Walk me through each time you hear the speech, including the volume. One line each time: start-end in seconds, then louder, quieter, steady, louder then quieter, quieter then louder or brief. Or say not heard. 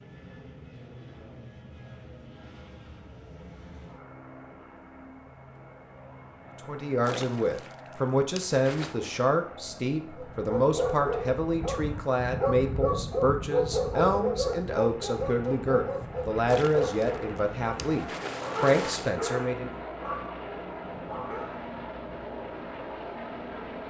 6.7-19.7 steady.